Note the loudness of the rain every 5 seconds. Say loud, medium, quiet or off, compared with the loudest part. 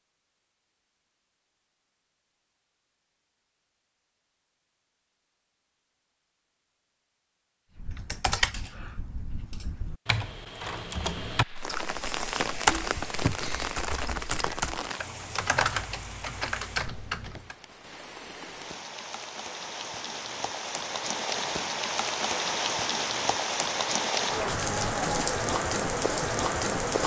off, off, medium, quiet, loud, loud.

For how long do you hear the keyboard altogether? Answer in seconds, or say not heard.
10 s.